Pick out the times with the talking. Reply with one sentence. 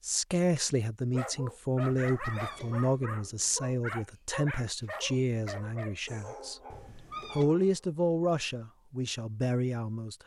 The talking can be heard from 0.1 to 10.2 s.